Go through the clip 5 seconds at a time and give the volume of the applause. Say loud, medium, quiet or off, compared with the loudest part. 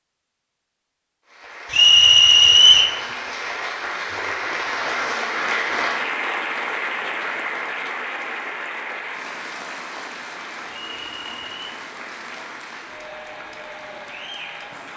loud, loud, medium.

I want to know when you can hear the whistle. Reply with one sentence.
The whistle can be heard from 1.7 to 3.0 s and from 10.7 to 11.8 s.